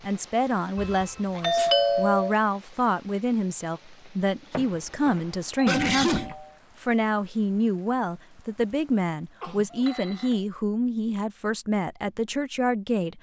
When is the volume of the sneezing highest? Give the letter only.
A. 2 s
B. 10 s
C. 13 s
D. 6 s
D.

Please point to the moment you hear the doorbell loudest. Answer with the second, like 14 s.
2 s.